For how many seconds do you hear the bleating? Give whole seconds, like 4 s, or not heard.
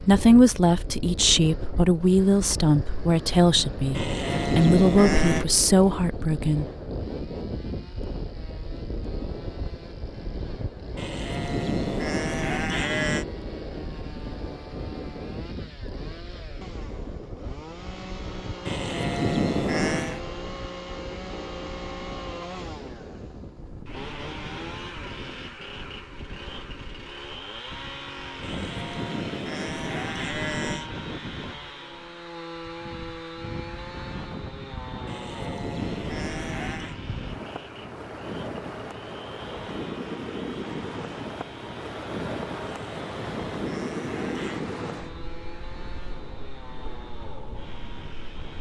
12 s.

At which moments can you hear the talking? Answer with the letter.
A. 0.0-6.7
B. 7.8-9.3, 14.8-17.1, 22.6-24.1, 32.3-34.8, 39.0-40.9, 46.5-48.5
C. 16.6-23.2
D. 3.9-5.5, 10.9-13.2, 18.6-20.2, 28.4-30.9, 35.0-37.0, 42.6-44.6
A.